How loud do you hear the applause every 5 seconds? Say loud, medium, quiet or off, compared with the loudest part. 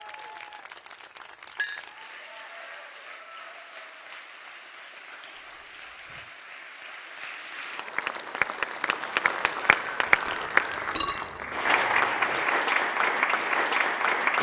quiet, medium, loud.